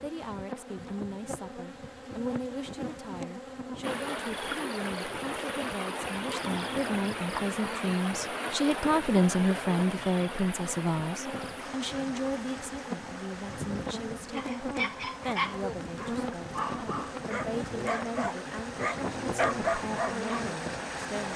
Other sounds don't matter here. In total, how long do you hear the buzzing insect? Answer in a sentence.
You can hear the buzzing insect for 21 seconds altogether.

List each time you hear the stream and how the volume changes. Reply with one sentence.
You can hear the stream from 3.8 to 21.3 s, getting quieter then louder.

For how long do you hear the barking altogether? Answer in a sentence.
You can hear the barking for 6 seconds altogether.